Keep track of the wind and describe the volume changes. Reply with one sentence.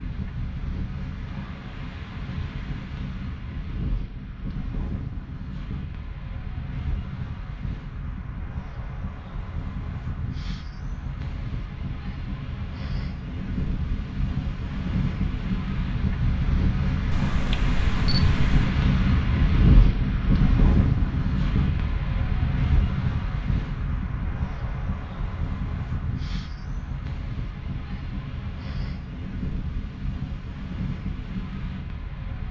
The volume of the wind goes up, then down.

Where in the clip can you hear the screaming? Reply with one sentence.
The screaming can't be heard in this clip.